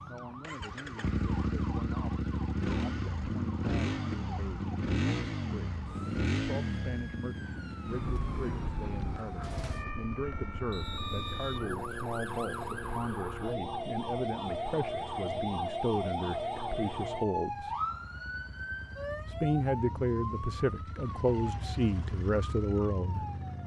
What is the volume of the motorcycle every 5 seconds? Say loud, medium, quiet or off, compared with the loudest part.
loud, loud, medium, quiet, medium.